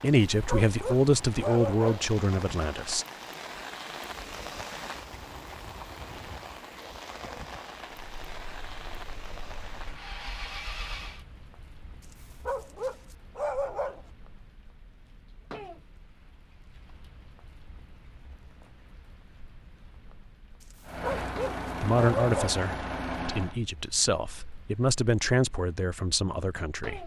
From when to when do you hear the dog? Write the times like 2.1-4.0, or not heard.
0.5-2.0, 12.4-14.1, 21.0-22.6.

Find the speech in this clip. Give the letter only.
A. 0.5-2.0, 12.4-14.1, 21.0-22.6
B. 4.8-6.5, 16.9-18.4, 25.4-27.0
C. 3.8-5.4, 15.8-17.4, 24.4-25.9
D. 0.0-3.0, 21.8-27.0
D.